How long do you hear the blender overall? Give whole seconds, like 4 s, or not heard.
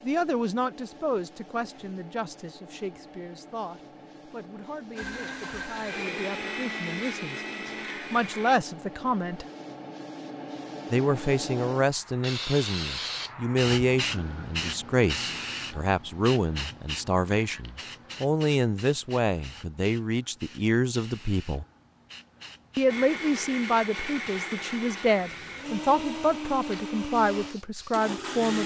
9 s.